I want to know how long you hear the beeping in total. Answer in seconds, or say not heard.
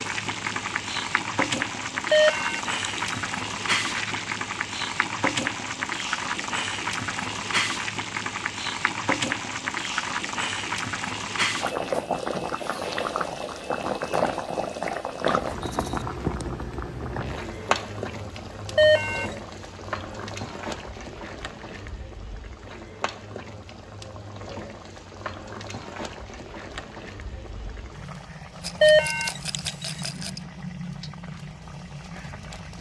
3 s.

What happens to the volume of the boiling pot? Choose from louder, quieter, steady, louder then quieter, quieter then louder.
quieter.